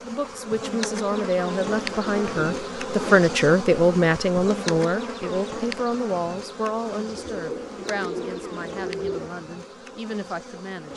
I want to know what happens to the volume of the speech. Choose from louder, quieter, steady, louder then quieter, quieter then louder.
louder then quieter.